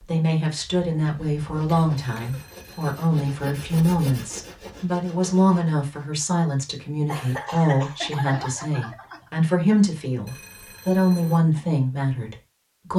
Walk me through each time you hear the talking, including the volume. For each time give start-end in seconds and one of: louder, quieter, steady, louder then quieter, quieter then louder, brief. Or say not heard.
0.0-12.9 steady.